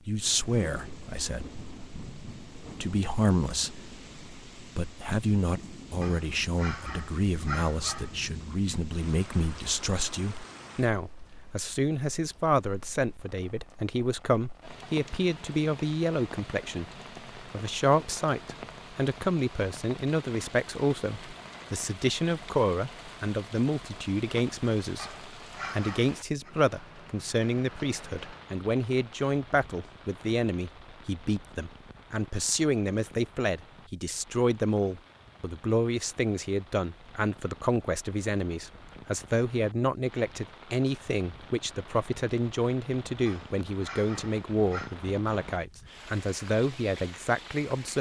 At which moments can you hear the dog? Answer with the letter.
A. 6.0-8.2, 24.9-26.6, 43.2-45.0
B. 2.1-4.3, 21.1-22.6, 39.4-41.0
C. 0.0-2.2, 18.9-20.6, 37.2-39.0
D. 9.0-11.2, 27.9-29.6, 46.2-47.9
A.